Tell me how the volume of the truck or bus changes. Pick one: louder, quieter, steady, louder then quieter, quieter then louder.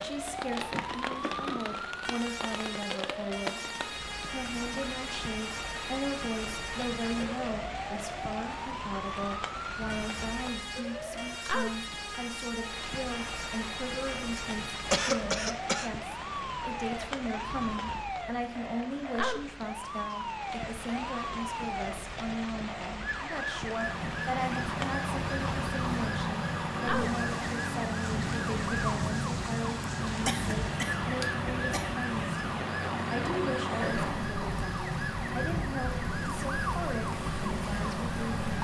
steady.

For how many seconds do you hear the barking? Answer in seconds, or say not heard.
not heard.